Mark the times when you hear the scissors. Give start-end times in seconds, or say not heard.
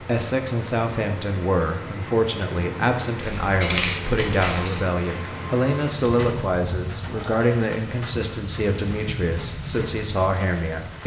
3.2-4.8.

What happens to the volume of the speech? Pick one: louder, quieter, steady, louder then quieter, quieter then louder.
steady.